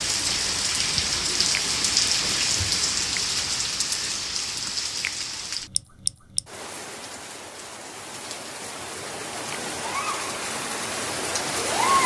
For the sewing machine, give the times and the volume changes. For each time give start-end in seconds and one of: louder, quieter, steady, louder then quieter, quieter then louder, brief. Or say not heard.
not heard.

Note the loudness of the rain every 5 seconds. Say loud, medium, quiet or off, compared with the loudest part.
loud, medium, loud.